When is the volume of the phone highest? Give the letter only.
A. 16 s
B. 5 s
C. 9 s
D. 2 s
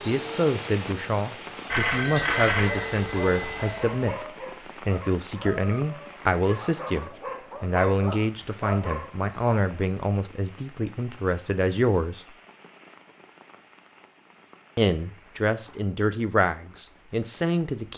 D.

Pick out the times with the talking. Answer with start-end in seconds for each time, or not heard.
0.1-12.3, 14.8-17.9.